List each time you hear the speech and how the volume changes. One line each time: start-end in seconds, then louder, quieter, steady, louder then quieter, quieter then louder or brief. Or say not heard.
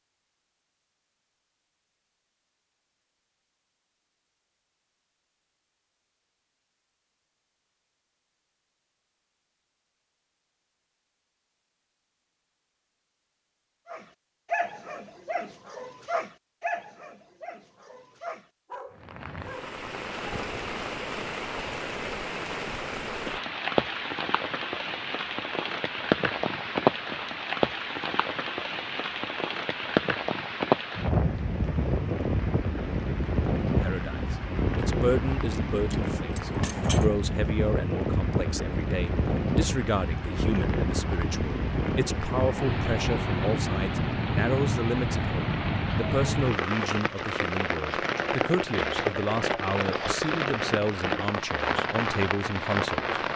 33.6-53.2 steady.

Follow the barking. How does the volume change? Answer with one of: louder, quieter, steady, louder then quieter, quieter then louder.
quieter then louder.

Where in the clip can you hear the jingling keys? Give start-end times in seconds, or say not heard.
35.9-37.0.